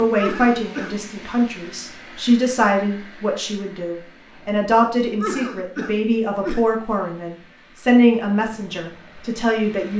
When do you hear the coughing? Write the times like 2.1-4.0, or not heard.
0.1-1.0, 5.2-6.7.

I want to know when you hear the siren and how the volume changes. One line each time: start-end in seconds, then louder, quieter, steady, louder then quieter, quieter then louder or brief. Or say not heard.
not heard.